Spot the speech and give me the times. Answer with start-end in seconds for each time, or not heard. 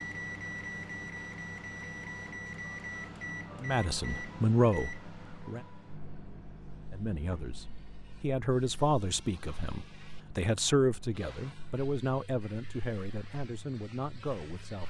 3.6-5.6, 6.9-14.8.